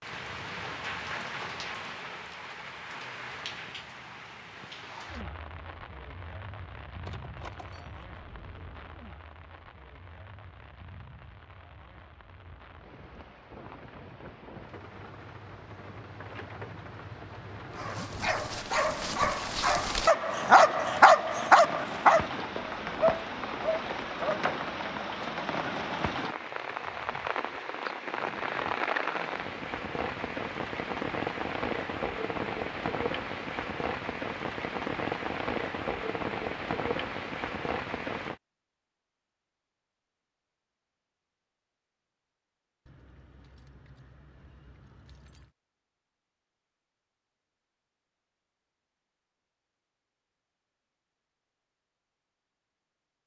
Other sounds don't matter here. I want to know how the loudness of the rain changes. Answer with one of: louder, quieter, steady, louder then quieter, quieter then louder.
quieter then louder.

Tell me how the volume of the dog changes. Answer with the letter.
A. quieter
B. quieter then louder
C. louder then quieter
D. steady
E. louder
C.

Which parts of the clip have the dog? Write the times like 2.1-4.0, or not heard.
17.8-24.4.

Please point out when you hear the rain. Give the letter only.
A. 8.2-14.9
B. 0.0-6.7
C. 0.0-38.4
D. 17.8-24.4
C.